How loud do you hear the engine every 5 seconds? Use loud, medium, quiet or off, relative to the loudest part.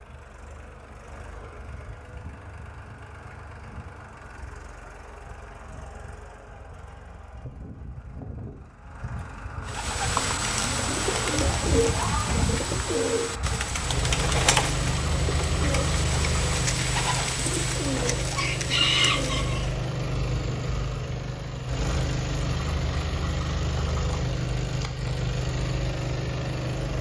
quiet, quiet, loud, loud, loud, loud.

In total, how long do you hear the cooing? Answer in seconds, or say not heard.
10 s.